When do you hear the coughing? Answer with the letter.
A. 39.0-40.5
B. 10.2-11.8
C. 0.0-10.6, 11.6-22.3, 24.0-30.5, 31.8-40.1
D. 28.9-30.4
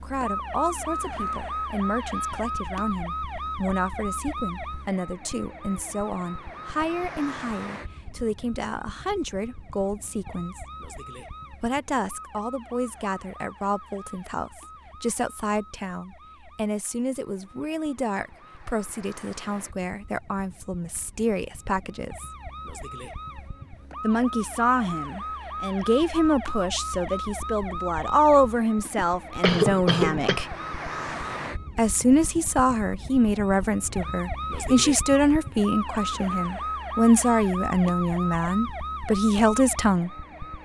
D.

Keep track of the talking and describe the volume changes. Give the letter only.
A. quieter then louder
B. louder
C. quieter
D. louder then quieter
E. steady
B.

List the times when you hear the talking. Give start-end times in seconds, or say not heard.
0.0-10.6, 11.6-22.3, 24.0-30.5, 31.8-40.1.